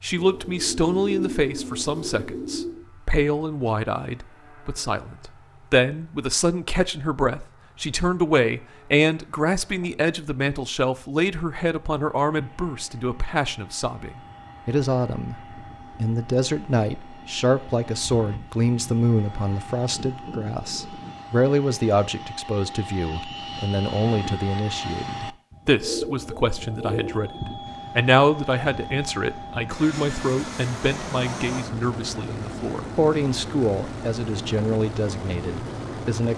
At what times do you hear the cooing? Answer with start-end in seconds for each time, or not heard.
0.1-2.8, 25.6-27.2.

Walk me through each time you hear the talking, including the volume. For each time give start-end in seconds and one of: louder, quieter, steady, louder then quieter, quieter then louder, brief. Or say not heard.
0.0-36.3 steady.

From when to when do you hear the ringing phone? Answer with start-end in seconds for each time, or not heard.
not heard.